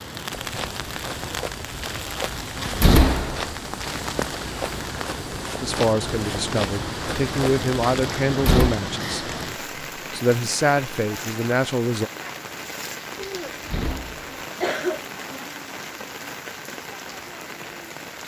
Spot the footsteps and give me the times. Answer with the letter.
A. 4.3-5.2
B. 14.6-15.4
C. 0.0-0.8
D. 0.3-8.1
D.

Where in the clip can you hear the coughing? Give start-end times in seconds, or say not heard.
14.6-15.4.